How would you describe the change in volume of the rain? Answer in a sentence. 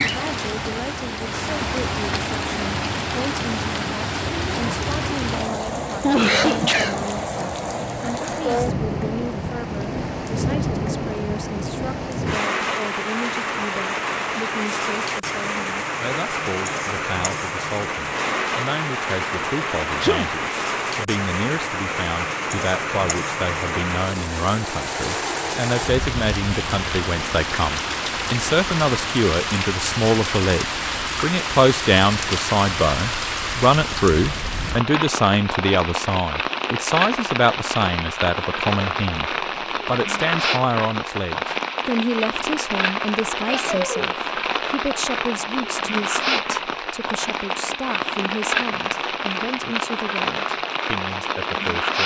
The volume of the rain stays about the same.